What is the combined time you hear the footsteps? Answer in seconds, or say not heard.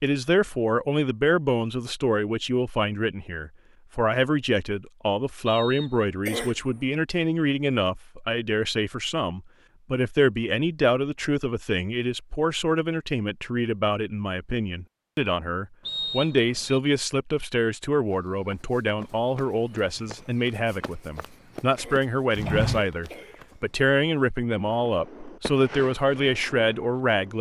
6 s.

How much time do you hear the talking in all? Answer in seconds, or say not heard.
27 s.